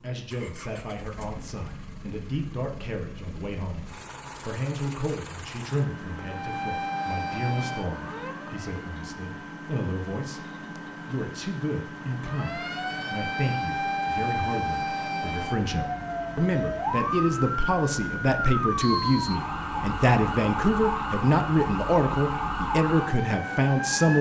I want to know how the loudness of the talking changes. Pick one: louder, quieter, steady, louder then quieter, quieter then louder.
louder.